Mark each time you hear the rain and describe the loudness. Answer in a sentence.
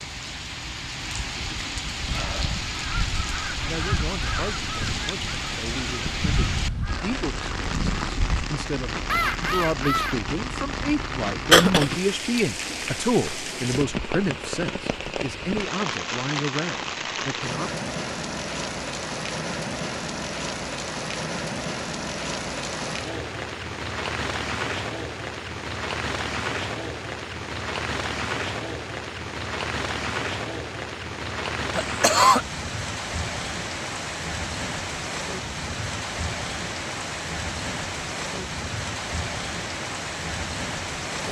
You can hear the rain from 0.0 to 41.2 s, at a steady volume.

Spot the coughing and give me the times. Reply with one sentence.
The coughing can be heard from 11.5 to 12.4 s and from 31.8 to 32.4 s.